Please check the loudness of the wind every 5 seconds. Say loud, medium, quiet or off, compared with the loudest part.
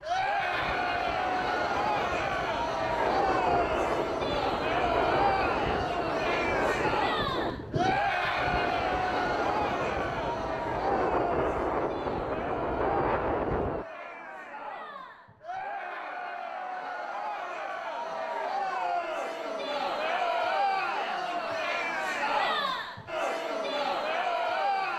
loud, loud, loud, off, off.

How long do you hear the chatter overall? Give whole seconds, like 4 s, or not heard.
25 s.